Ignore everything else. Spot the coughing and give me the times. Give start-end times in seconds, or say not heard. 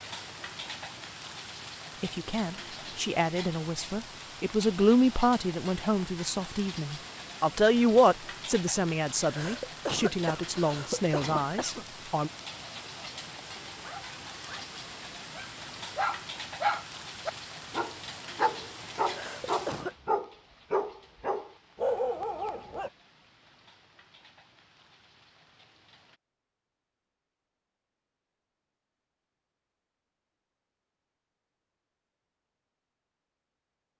9.2-11.8, 19.0-19.9.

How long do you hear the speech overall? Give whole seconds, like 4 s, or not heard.
10 s.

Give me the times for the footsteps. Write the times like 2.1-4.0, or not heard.
not heard.